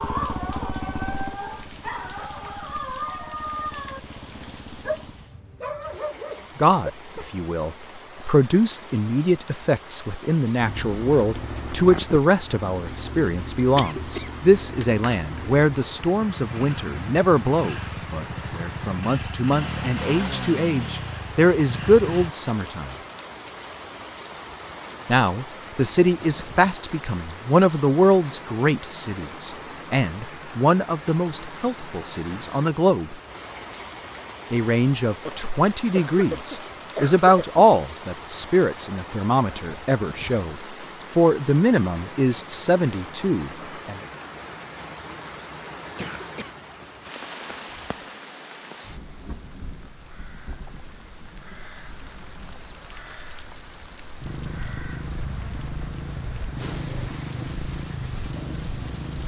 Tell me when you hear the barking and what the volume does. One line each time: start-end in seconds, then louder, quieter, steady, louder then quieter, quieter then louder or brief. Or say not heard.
0.0-7.3 steady.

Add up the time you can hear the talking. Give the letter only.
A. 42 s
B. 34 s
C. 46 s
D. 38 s
B.